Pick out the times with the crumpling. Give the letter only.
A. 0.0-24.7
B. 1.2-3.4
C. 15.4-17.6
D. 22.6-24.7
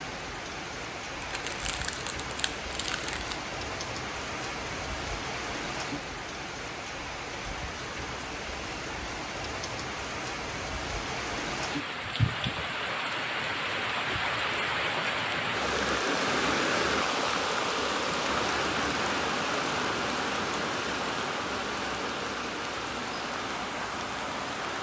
B.